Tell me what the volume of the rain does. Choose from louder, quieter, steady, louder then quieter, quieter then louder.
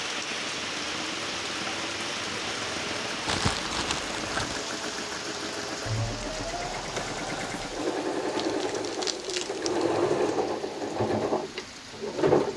quieter.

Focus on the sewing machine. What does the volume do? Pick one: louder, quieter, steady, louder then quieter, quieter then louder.
louder.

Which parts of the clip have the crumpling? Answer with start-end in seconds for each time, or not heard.
3.2-4.6, 8.3-10.0.